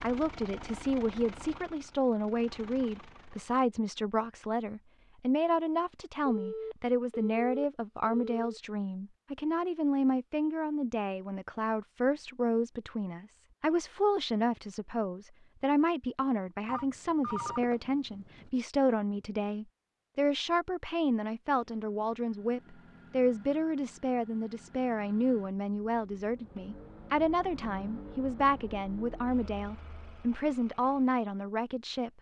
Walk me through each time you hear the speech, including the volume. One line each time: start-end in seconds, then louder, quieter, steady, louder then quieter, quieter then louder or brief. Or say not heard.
0.0-32.1 steady.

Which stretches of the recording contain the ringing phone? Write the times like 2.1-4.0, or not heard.
6.2-8.6, 16.6-18.4.